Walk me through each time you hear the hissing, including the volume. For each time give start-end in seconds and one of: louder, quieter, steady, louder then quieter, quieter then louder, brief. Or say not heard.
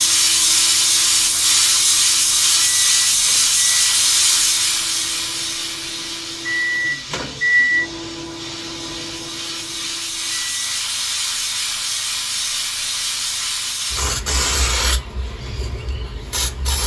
0.0-16.8 quieter then louder.